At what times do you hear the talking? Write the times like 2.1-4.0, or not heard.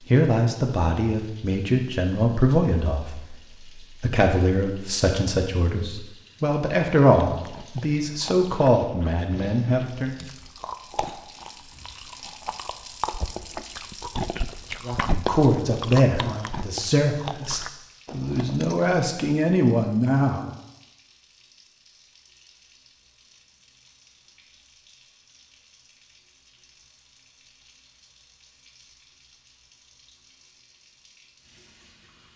0.1-3.2, 4.0-10.2, 14.8-20.5.